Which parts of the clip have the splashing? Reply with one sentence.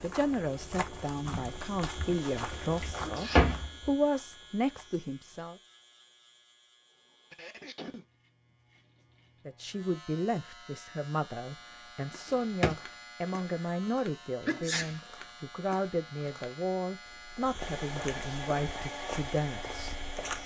You can't hear the splashing here.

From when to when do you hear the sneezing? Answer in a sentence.
You can hear the sneezing from 3.0 to 3.5 s, from 7.3 to 8.1 s and from 14.4 to 14.9 s.